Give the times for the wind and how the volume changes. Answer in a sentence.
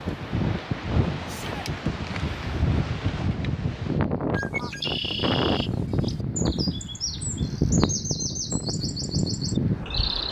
The wind can be heard from 0.0 to 10.2 s, at a steady volume.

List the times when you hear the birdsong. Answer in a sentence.
The birdsong can be heard from 4.3 to 10.2 s.